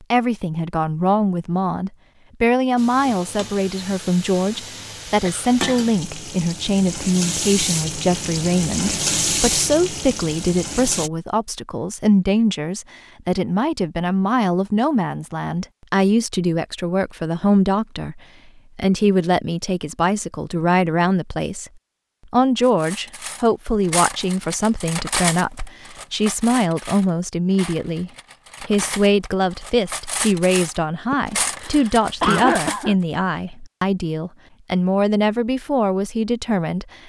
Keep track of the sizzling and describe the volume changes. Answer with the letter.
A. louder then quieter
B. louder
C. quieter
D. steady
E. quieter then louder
B.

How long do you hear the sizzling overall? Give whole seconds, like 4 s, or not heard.
8 s.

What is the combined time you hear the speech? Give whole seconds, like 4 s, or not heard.
36 s.